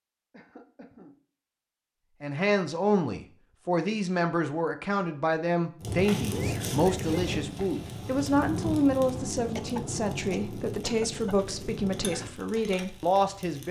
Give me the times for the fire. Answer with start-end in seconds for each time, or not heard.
5.8-13.6.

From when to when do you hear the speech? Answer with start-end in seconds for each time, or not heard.
2.2-13.6.